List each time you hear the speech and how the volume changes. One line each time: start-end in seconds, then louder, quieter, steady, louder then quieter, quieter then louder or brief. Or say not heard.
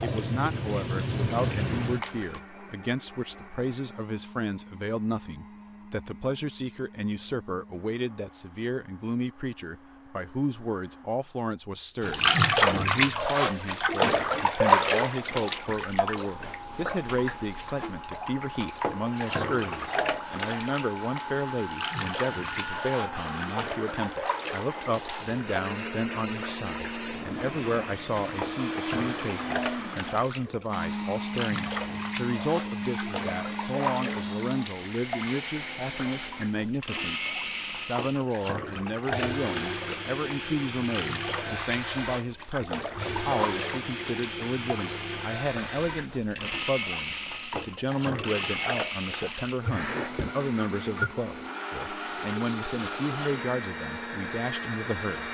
0.0-55.3 steady.